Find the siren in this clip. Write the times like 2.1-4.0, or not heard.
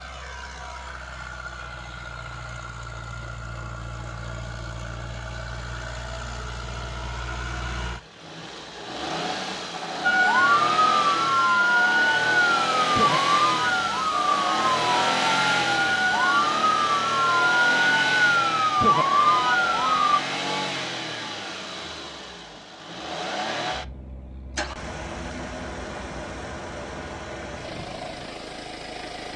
10.0-20.2.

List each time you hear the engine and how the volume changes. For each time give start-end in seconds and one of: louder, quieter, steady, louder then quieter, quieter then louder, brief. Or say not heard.
0.0-29.3 louder then quieter.